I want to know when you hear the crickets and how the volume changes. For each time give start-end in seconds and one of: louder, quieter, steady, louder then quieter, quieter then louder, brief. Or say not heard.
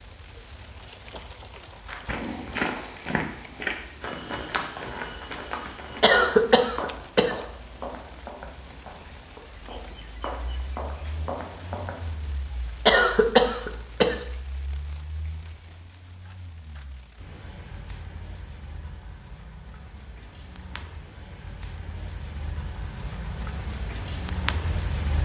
0.0-25.1 quieter.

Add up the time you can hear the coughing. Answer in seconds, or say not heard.
3 s.